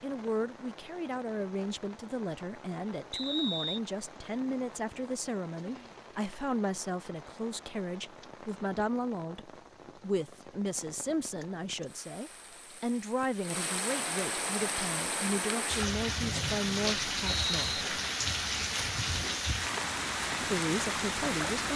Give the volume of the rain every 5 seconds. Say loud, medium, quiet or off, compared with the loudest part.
quiet, quiet, medium, loud, loud.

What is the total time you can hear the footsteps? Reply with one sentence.
You can't hear the footsteps here.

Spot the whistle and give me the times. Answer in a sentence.
You can hear the whistle from 3.1 to 3.8 s and from 16.2 to 17.9 s.